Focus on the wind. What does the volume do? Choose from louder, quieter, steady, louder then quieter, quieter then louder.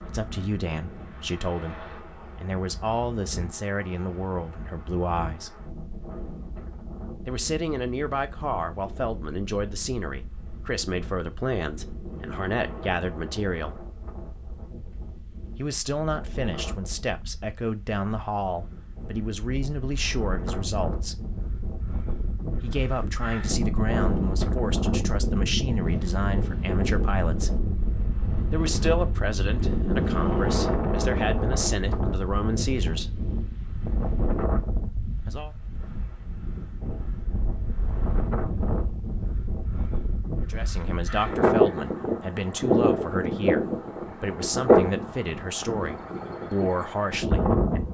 louder.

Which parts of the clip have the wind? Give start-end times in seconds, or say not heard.
0.0-47.8.